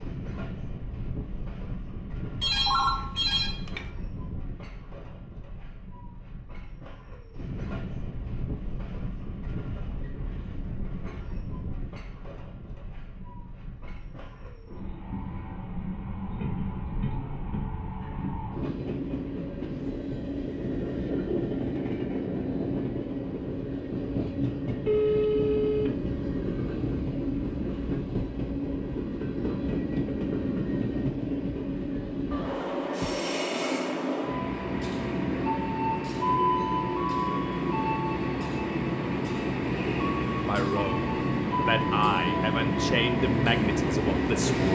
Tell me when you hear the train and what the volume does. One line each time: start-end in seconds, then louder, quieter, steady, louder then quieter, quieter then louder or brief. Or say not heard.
0.0-44.7 louder.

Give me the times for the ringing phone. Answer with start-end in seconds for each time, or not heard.
2.4-3.9, 24.9-26.0, 32.3-33.2.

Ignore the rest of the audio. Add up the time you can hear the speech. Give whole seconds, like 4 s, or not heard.
4 s.